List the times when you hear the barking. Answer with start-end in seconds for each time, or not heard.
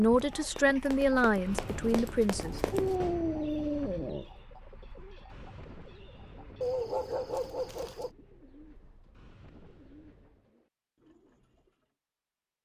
2.7-4.2, 6.6-8.1.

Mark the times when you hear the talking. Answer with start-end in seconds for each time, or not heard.
0.0-2.6.